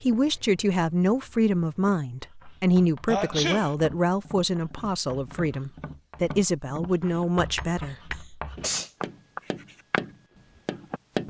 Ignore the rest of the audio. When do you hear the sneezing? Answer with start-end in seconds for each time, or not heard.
3.0-3.7, 8.2-8.9.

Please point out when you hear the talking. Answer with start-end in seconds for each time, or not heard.
0.0-8.2.